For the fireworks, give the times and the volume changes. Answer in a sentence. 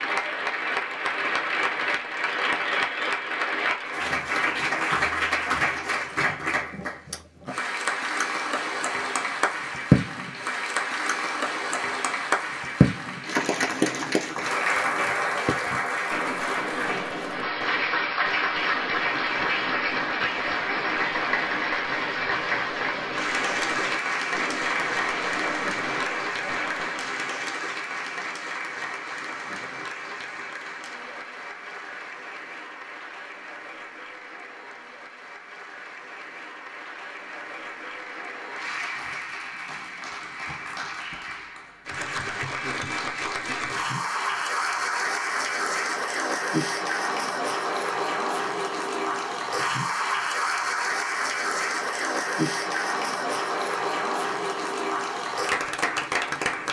You can hear the fireworks from 14.9 to 27.1 s, at a steady volume.